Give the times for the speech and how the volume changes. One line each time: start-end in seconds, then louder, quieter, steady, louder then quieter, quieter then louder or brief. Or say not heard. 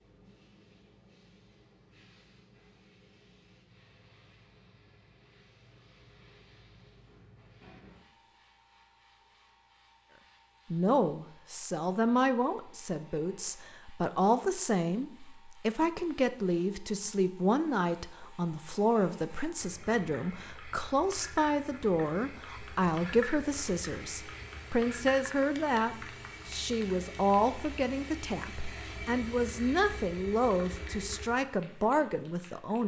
10.7-32.8 steady.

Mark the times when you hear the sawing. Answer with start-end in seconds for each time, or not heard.
not heard.